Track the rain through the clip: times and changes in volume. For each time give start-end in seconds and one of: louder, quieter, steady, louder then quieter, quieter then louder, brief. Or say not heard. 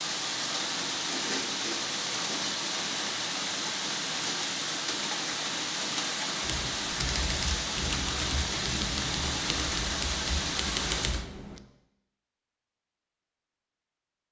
0.0-11.2 steady.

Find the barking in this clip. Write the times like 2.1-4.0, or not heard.
not heard.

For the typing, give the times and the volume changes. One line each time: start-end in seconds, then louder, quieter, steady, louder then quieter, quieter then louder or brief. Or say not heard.
6.4-11.6 steady.